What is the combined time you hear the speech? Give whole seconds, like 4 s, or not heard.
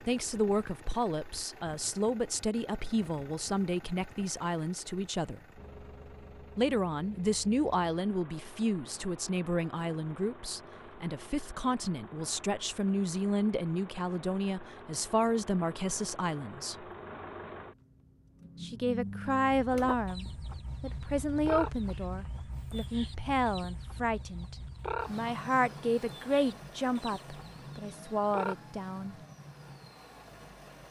26 s.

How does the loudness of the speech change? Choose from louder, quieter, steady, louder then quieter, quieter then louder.
steady.